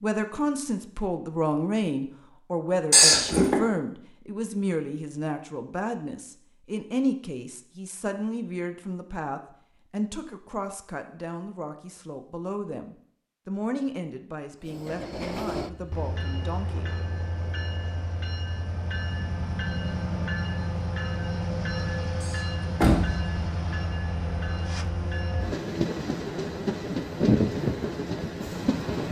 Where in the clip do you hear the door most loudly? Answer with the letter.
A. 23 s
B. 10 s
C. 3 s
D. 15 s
C.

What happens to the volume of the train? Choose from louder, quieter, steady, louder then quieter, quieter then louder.
louder.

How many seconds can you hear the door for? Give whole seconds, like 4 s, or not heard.
2 s.